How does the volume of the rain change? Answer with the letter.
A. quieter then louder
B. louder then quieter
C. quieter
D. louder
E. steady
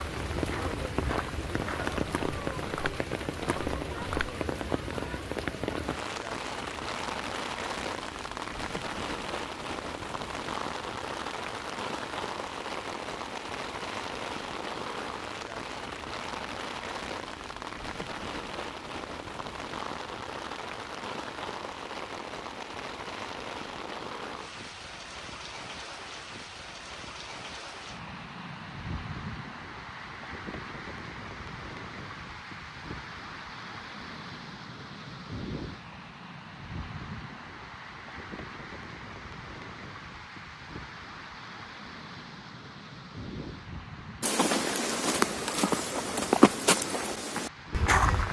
C.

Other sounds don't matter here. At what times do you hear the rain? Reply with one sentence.
You can hear the rain from 0.0 to 48.0 s.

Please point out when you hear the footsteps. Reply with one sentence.
The footsteps can be heard from 0.0 to 4.4 s and from 44.2 to 48.2 s.